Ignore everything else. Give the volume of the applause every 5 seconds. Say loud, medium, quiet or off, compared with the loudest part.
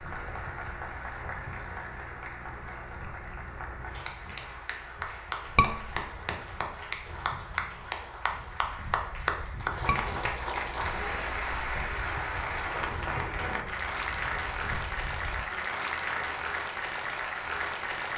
medium, loud, loud, loud.